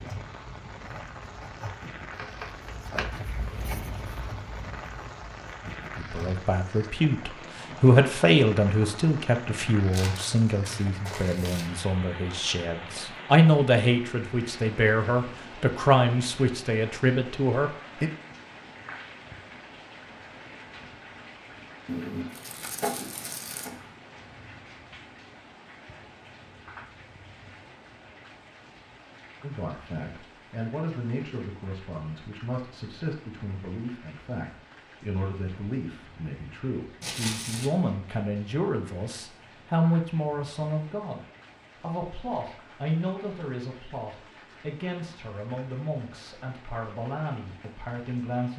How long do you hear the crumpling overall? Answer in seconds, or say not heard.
4 s.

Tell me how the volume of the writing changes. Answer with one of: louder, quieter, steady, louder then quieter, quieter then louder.
louder then quieter.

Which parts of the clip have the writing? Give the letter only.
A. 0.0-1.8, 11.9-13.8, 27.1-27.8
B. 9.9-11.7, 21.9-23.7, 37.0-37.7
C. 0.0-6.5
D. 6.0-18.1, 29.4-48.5
C.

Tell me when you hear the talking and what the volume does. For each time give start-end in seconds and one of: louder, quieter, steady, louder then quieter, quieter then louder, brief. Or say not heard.
6.0-18.1 quieter then louder
29.4-48.5 louder then quieter.